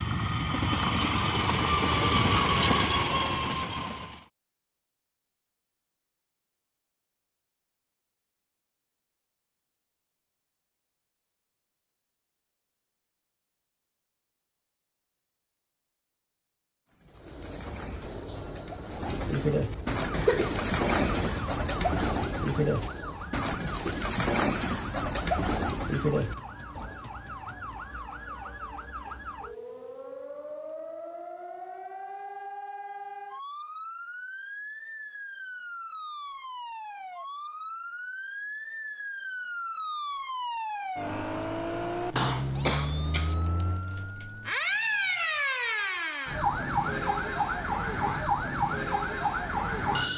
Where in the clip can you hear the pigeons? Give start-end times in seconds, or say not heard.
16.9-26.9.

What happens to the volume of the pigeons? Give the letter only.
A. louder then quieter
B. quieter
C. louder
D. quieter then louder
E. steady
C.